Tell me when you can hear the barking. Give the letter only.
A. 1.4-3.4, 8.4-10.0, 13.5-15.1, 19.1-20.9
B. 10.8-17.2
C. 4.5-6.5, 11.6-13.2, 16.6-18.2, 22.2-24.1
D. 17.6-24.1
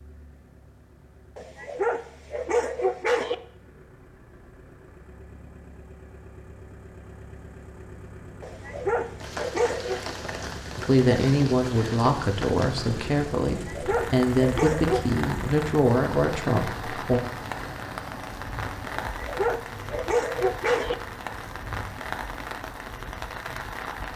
A.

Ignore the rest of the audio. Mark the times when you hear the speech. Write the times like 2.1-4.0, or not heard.
10.8-17.2.